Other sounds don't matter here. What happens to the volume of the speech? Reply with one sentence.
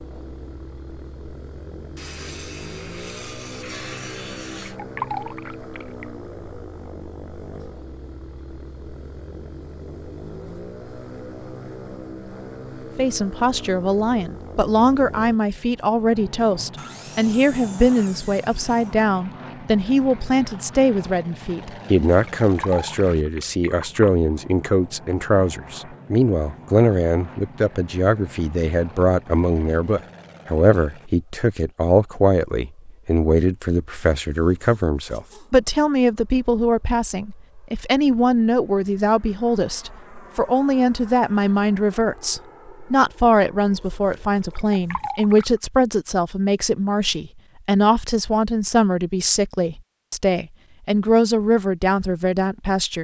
The loudness of the speech stays about the same.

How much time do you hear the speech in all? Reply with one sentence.
You can hear the speech for 40 seconds altogether.